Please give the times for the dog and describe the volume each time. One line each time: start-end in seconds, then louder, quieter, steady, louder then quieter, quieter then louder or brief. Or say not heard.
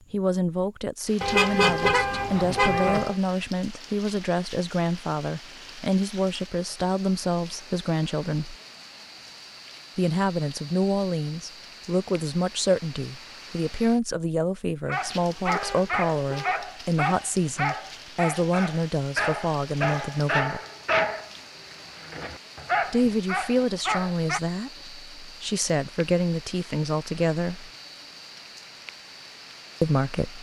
14.8-24.4 steady.